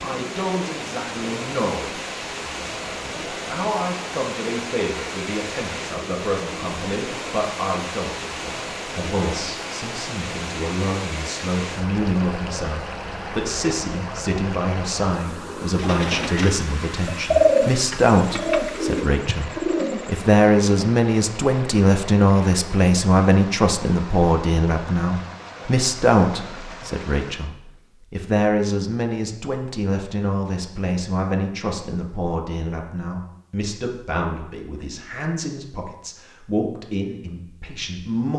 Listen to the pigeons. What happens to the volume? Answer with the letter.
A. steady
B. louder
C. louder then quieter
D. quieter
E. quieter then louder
C.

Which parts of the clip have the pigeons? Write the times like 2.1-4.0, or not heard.
15.3-20.2.